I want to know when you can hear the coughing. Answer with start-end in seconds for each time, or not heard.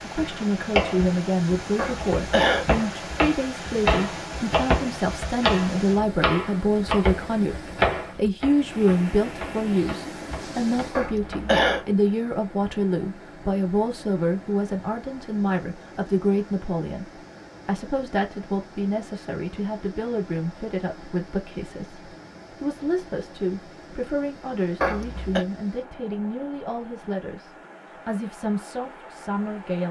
1.8-2.6, 10.9-11.8, 24.8-25.4.